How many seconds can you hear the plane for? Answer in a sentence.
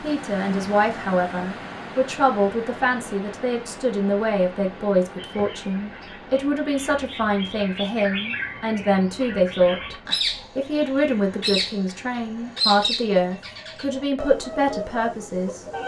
The plane can't be heard in this clip.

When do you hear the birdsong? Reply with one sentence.
You can hear the birdsong from 5.2 to 15.8 s.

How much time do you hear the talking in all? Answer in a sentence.
The talking can be heard for 15 seconds in total.